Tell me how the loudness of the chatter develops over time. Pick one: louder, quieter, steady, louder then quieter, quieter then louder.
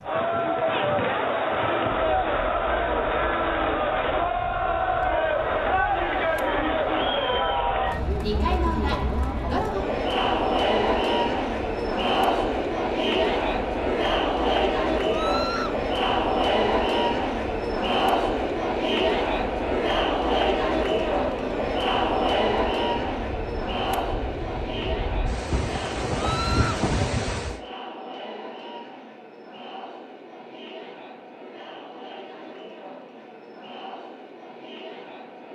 quieter.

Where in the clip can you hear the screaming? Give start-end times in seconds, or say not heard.
15.1-15.8, 26.1-26.8.